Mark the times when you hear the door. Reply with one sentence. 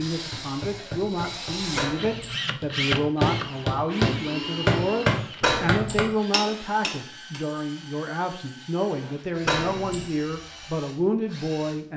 You can hear the door from 1.8 to 2.4 s, from 5.4 to 6.0 s and from 9.4 to 10.1 s.